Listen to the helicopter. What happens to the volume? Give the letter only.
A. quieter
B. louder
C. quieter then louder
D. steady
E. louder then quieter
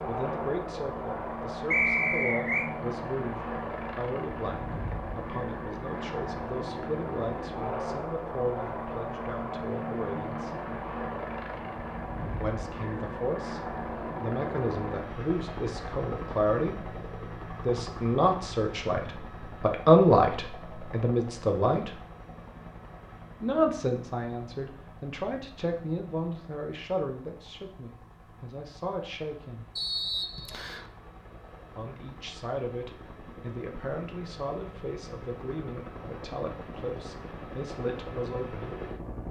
C.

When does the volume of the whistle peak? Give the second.
2 s.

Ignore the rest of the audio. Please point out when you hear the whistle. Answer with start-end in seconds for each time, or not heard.
1.7-2.7, 29.8-30.9.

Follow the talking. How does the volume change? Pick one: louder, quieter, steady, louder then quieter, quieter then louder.
louder then quieter.